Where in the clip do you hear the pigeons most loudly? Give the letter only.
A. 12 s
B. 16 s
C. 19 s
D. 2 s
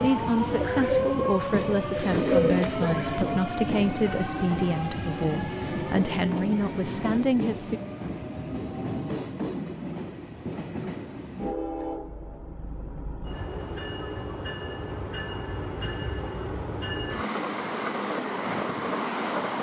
D.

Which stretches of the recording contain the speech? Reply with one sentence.
You can hear the speech from 0.0 to 7.8 s.